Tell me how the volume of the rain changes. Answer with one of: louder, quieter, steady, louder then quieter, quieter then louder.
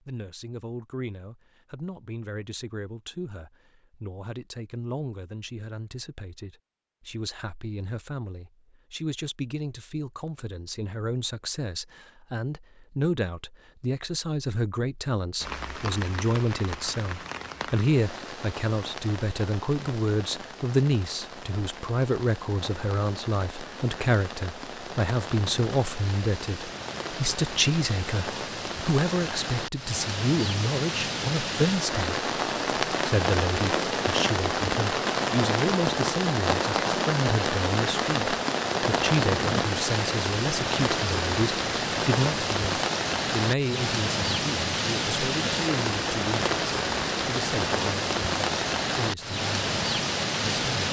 louder.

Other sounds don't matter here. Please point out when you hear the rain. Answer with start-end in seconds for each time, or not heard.
15.4-50.8.